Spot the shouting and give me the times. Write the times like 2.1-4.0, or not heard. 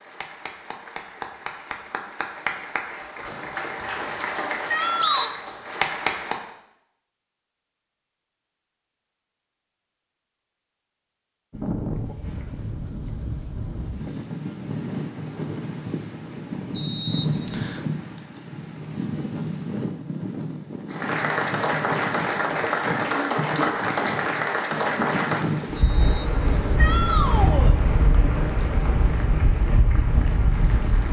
4.7-5.3, 26.8-27.8.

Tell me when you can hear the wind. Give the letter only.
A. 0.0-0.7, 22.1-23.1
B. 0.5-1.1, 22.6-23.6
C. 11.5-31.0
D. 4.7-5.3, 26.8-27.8
C.